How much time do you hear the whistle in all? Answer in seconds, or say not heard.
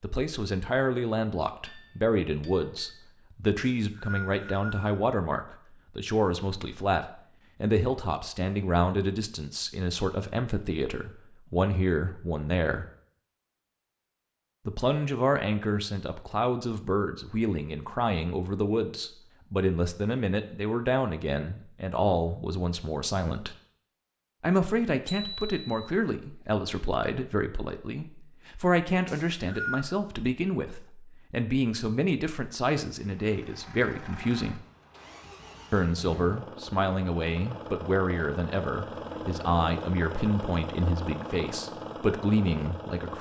2 s.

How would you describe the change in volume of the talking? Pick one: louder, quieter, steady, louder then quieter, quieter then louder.
steady.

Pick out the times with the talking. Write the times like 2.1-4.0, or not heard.
0.0-12.8, 14.7-23.6, 24.4-34.6, 35.7-43.1.